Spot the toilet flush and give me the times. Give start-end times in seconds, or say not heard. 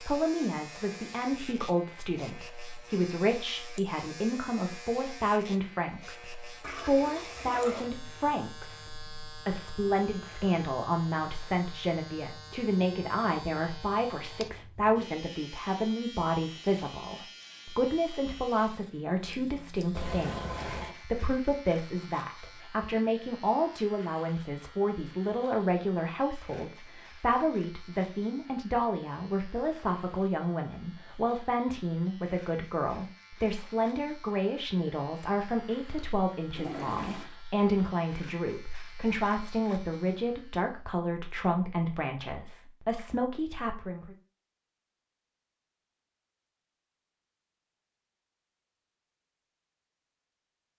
6.6-7.9, 19.9-20.9, 36.5-37.3.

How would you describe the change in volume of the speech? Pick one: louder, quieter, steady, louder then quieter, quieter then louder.
steady.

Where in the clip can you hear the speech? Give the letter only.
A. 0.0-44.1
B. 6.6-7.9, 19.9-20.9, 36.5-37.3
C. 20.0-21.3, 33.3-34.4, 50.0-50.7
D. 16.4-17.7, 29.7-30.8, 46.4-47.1
A.